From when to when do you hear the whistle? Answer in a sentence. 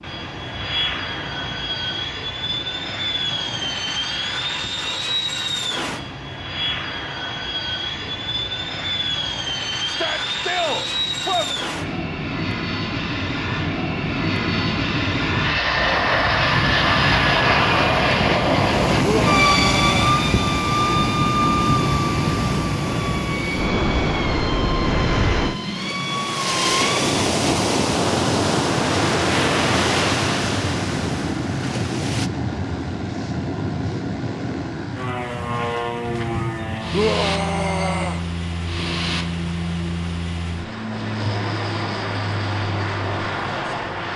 You can't hear the whistle here.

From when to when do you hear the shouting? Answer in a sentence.
You can hear the shouting from 9.8 to 11.6 s, from 19.0 to 20.1 s and from 36.9 to 38.2 s.